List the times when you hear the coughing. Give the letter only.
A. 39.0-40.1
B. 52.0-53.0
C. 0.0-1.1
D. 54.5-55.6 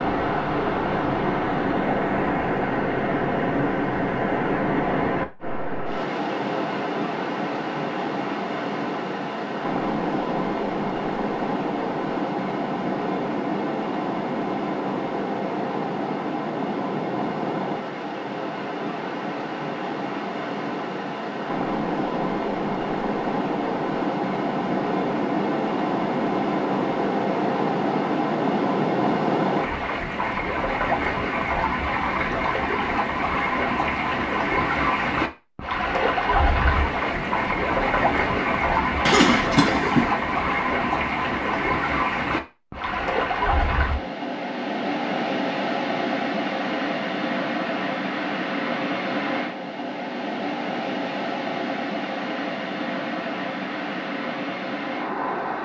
A.